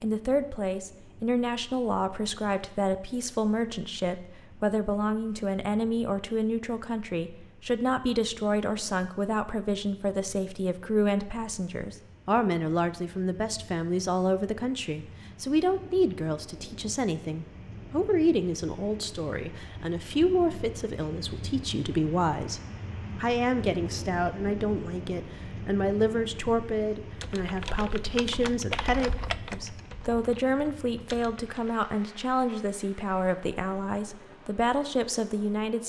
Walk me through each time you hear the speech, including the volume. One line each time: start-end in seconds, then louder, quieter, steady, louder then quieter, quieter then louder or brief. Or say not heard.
0.0-35.8 steady.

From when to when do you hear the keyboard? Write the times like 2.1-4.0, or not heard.
27.2-31.6.